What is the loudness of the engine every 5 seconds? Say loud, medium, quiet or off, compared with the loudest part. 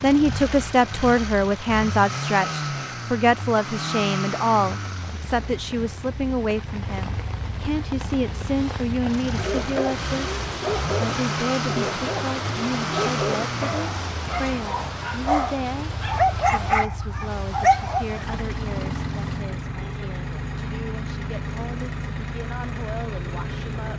loud, medium, loud, loud, loud.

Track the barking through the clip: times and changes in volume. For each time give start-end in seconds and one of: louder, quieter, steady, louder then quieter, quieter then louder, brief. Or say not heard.
9.3-18.4 louder.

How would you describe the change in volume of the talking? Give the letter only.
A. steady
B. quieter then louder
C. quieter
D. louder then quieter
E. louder
C.